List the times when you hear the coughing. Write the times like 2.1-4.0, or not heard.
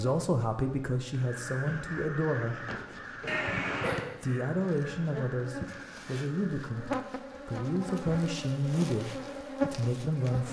3.2-4.0.